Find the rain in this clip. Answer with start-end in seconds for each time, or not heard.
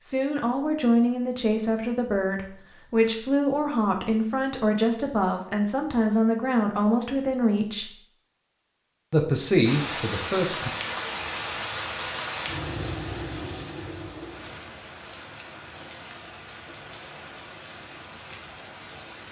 9.6-19.2.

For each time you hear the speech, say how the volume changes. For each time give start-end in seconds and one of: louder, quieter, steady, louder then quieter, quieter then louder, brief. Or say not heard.
0.0-8.0 steady
9.1-10.7 brief.